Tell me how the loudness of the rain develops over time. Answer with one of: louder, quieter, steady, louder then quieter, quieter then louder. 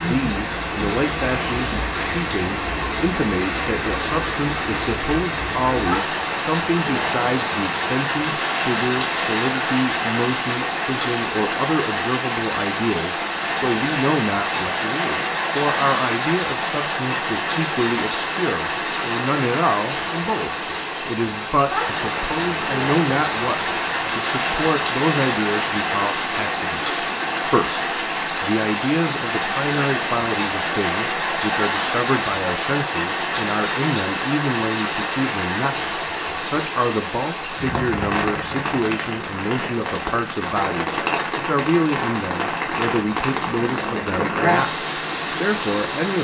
steady.